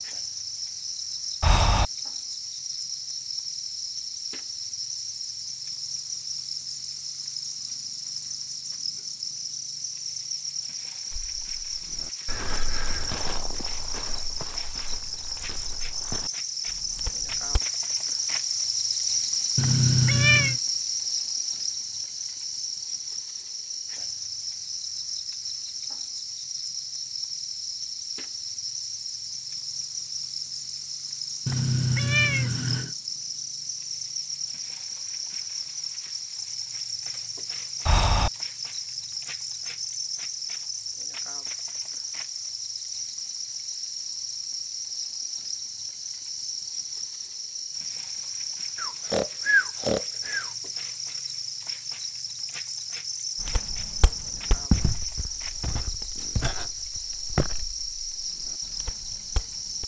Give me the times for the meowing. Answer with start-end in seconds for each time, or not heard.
19.6-20.6, 31.4-32.9.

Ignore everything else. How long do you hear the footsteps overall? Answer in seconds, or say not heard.
13 s.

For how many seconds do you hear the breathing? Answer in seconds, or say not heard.
3 s.